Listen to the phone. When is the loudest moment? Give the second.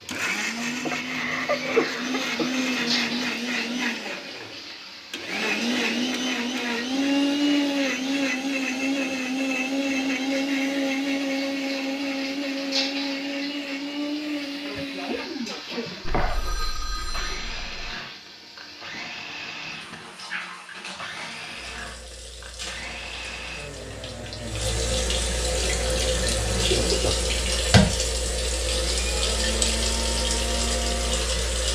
17 s.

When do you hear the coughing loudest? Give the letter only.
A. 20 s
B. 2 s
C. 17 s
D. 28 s
B.